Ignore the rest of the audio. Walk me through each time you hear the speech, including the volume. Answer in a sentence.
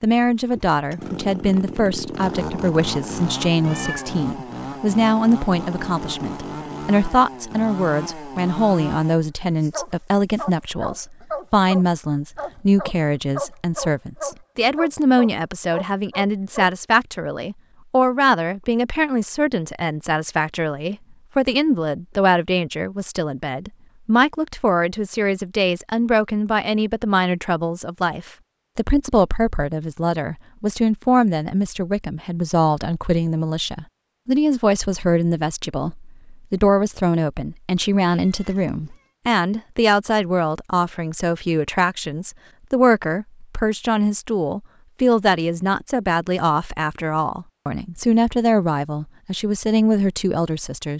You can hear the speech from 0.0 to 50.9 s, at a steady volume.